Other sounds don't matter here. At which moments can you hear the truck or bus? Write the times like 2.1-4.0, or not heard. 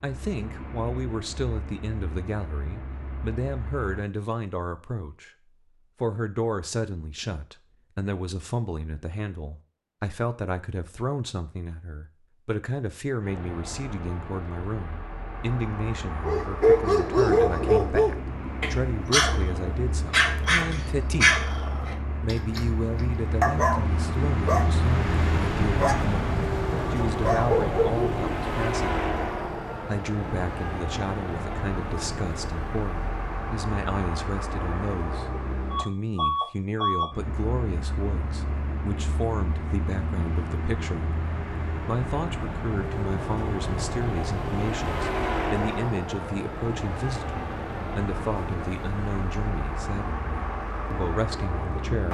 0.0-4.0, 13.2-52.1.